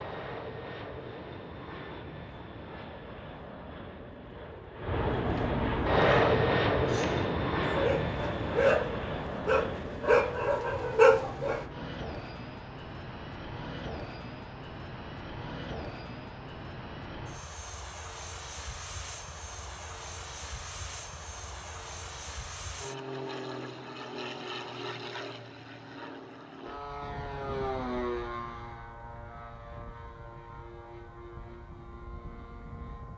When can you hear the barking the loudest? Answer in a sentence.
The volume of the barking peaks at 11 seconds.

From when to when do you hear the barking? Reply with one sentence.
The barking can be heard from 6.0 to 11.7 s.